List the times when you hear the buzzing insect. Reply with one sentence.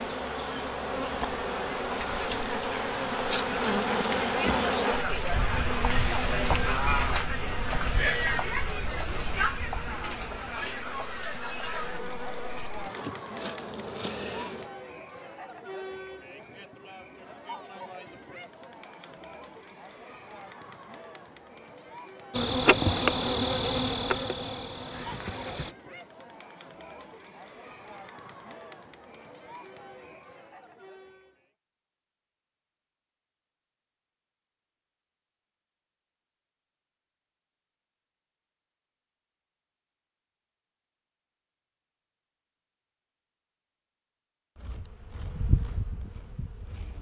You can hear the buzzing insect from 0.0 to 14.7 s, from 22.3 to 25.8 s and from 44.5 to 46.9 s.